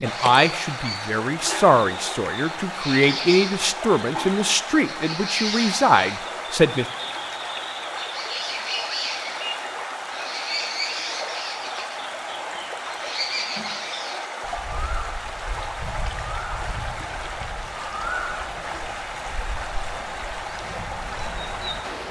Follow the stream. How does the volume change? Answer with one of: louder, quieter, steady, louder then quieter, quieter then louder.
steady.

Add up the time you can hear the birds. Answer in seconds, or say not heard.
22 s.